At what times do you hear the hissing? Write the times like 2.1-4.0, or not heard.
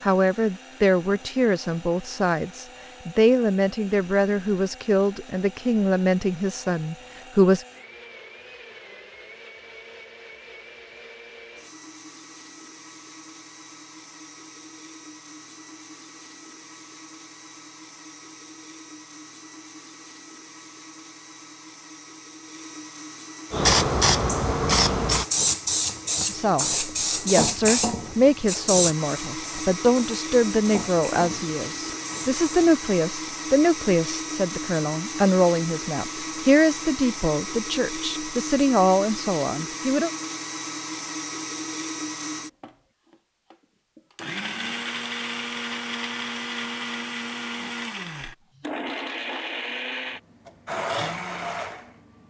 23.5-32.7.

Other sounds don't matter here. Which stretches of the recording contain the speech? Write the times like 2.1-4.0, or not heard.
0.0-7.7, 26.3-40.1.